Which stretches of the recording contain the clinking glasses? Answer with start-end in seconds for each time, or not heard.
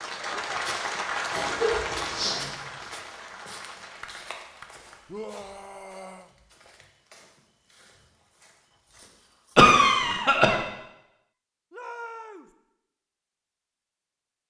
not heard.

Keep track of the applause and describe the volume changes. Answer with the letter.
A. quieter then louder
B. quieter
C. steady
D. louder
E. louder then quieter
B.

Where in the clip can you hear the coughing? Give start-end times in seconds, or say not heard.
1.3-2.5, 9.6-10.6.